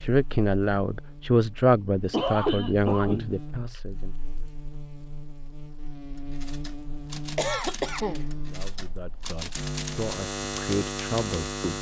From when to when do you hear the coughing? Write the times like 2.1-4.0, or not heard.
1.9-3.4, 7.3-8.2.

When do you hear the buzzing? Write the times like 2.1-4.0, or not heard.
0.0-11.7.